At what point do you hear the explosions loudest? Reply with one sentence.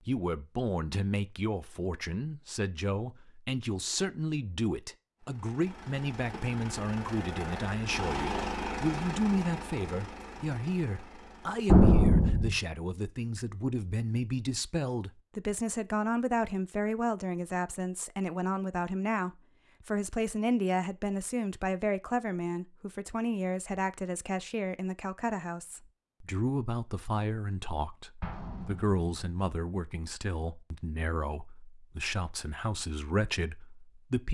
The volume of the explosions peaks at 12 seconds.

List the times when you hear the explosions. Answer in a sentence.
The explosions can be heard from 11.7 to 12.6 s and from 28.2 to 29.4 s.